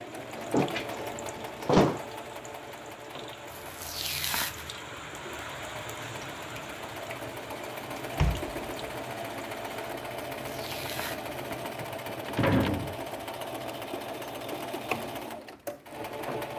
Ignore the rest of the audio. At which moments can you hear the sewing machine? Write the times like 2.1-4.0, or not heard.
0.0-16.5.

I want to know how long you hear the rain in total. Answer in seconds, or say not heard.
10 s.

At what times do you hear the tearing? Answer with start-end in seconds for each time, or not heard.
3.5-4.8, 10.3-11.7.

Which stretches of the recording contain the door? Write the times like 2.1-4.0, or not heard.
0.3-2.0, 8.2-8.6, 11.8-12.9.